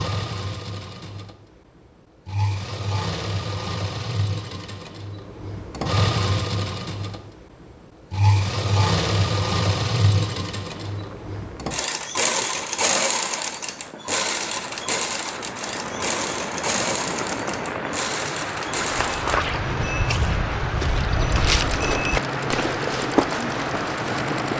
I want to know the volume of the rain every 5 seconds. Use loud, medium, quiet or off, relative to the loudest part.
off, off, quiet, loud, loud.